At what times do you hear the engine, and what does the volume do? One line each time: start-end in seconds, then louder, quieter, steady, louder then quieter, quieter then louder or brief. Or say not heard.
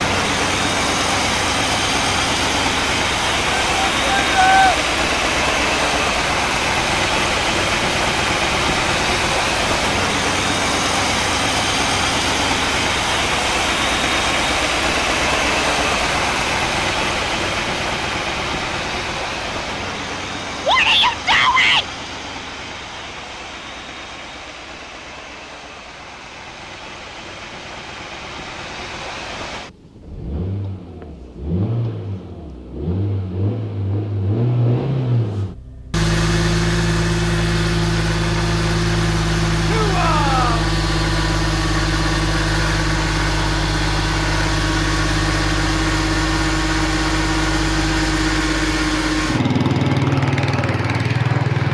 0.0-51.7 quieter then louder.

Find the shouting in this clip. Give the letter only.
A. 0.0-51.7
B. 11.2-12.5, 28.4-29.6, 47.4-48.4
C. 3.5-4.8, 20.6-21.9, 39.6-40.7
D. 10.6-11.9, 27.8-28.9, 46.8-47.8
C.